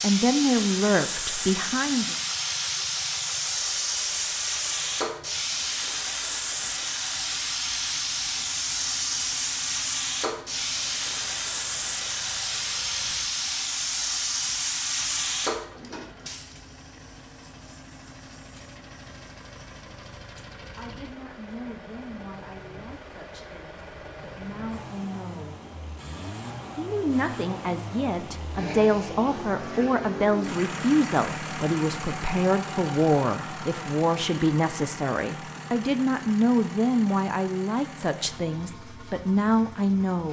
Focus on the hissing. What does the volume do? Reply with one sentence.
The loudness of the hissing goes down.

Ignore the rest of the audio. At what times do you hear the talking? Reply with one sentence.
You can hear the talking from 0.0 to 2.1 s, from 20.8 to 25.6 s and from 26.8 to 40.2 s.